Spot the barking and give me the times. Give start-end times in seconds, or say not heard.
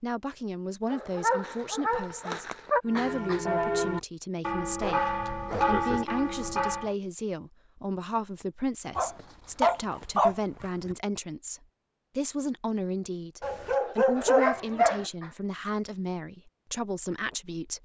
0.9-2.8, 4.8-6.3, 8.9-10.9, 13.4-15.1.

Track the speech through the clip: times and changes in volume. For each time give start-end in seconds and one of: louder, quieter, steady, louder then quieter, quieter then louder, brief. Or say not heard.
0.0-17.8 steady.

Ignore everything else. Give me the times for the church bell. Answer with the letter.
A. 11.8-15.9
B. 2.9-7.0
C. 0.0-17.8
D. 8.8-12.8
B.